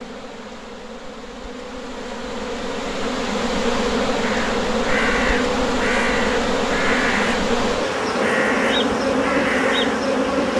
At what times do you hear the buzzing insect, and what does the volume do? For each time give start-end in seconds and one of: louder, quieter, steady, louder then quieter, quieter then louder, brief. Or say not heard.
0.0-10.5 louder.